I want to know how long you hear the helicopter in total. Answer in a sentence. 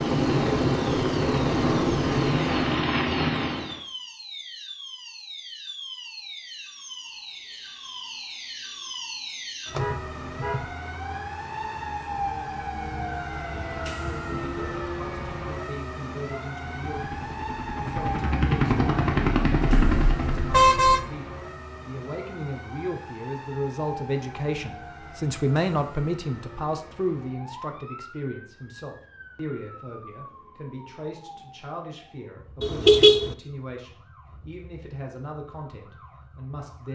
You can hear the helicopter for 8 seconds altogether.